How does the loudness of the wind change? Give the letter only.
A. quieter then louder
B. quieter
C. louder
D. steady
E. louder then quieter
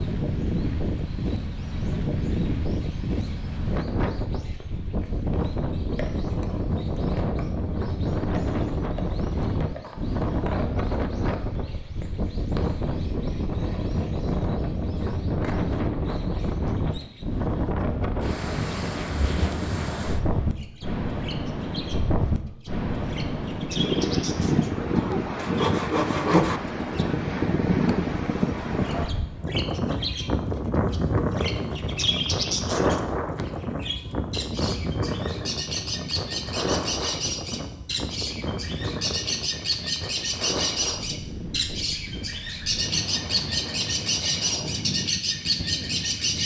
B.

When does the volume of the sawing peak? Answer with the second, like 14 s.
26 s.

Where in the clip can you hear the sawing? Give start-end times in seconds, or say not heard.
24.9-26.6.